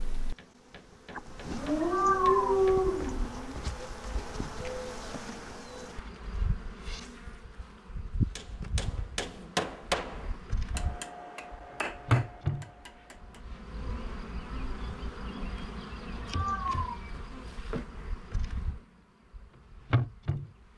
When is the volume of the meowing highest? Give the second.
2 s.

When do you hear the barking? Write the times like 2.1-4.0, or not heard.
1.6-3.6.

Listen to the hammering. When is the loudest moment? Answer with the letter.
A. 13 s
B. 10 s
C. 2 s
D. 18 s
B.